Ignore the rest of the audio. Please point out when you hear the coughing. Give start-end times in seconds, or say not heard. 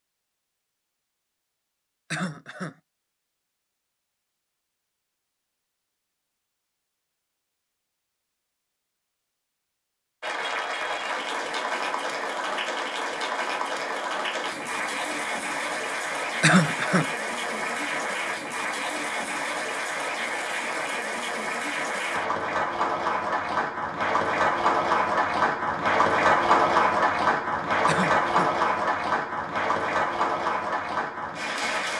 2.1-2.8, 16.4-17.1, 27.9-28.5.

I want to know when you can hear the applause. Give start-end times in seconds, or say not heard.
10.2-31.9.